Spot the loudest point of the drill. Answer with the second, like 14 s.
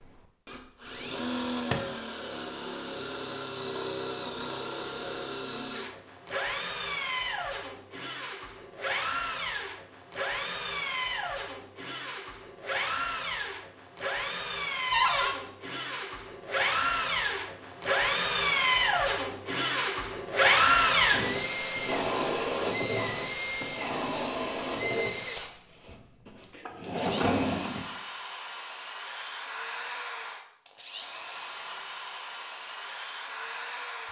21 s.